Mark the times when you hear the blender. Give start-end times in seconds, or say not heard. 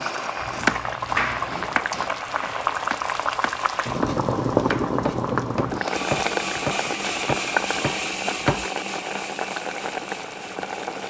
0.0-2.1, 5.7-11.0.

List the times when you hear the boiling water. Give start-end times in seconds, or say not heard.
0.0-11.0.